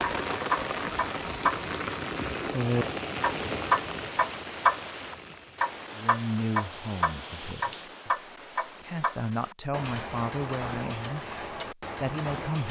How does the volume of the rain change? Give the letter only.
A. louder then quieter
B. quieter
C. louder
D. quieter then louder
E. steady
B.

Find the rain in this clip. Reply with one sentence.
The rain can be heard from 0.0 to 8.1 s.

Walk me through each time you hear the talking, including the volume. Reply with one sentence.
The talking can be heard from 6.0 to 12.6 s, getting quieter then louder.